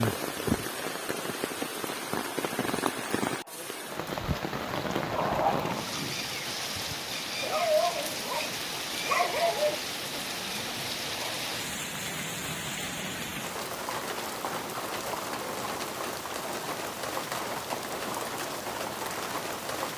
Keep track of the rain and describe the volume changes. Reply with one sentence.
The volume of the rain stays about the same.